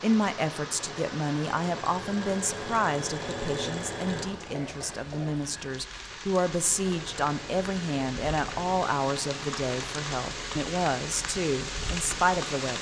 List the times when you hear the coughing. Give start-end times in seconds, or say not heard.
4.5-5.3.